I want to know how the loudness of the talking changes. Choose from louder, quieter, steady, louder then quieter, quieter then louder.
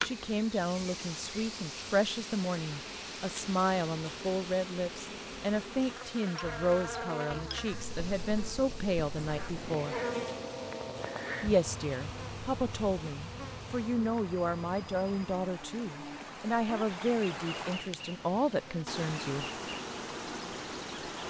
steady.